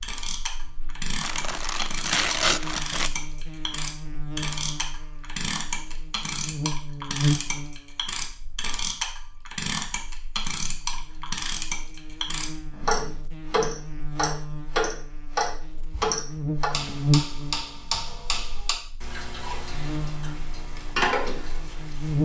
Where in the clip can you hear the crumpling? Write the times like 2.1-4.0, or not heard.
1.2-3.1.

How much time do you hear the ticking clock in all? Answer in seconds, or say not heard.
22 s.